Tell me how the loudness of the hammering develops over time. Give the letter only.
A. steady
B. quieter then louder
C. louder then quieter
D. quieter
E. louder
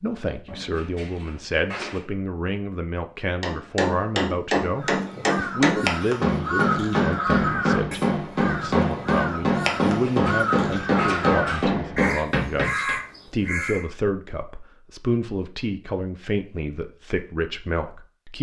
A.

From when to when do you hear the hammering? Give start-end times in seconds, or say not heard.
3.4-12.9.